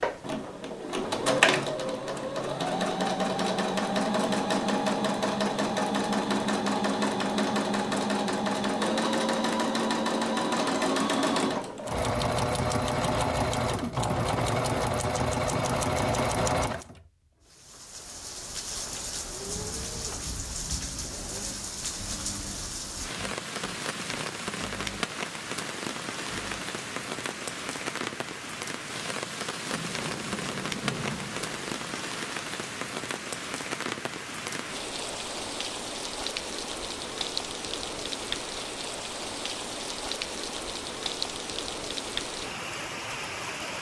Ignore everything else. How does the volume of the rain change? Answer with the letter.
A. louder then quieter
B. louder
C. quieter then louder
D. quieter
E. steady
E.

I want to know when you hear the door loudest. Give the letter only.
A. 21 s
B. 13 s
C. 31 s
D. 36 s
C.